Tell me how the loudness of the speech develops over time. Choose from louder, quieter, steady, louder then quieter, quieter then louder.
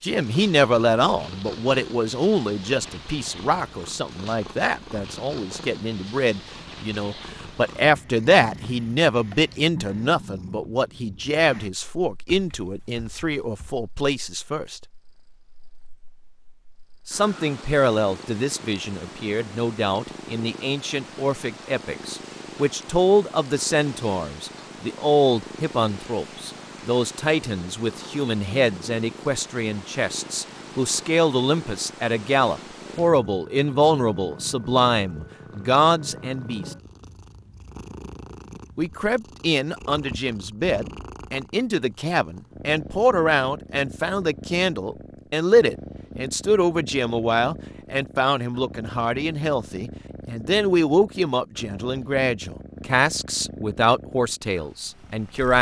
steady.